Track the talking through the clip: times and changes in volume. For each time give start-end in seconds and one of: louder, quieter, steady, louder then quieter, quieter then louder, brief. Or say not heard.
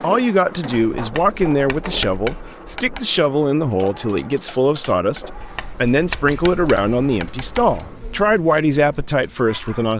0.0-9.9 steady.